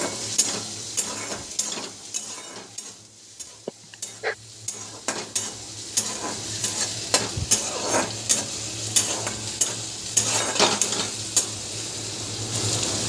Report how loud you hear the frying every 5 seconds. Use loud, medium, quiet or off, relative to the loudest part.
medium, loud, loud.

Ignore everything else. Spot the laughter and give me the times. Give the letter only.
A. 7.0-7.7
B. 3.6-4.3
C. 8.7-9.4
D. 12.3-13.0
B.